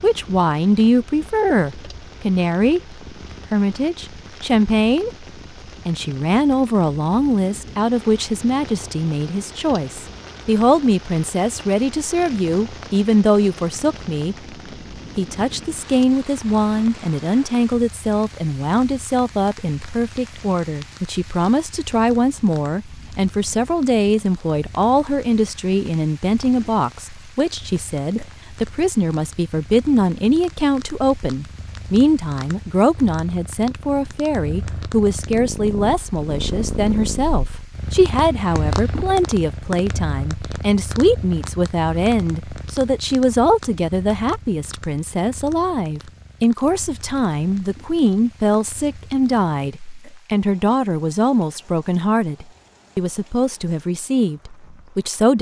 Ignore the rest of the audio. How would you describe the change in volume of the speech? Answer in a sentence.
The loudness of the speech stays about the same.